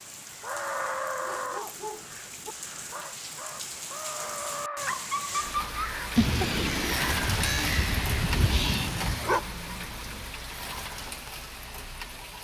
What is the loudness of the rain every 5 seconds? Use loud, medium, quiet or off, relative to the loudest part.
medium, loud, medium.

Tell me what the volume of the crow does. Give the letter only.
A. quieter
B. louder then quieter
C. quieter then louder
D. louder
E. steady
C.